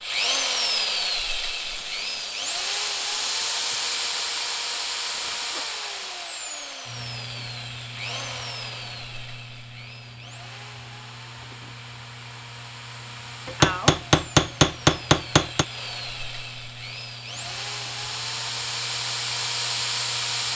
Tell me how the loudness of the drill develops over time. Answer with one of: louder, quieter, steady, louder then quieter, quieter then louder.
quieter then louder.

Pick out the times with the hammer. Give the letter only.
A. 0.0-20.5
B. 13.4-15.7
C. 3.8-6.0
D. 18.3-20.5
B.